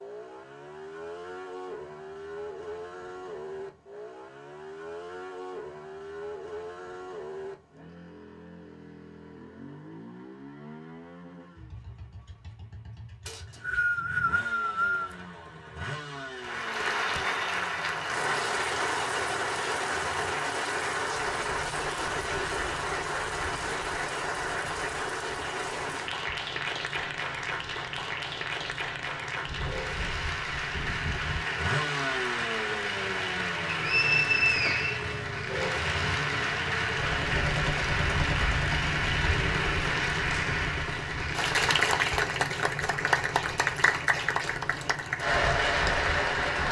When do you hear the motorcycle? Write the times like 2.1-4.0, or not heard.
0.0-46.6.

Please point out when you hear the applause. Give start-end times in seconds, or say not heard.
16.4-46.6.